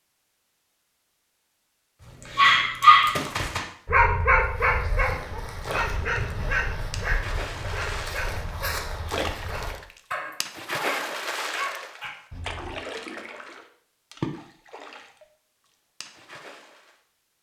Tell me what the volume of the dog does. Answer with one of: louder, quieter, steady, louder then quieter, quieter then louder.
quieter.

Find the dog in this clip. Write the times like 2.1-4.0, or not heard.
2.3-12.8.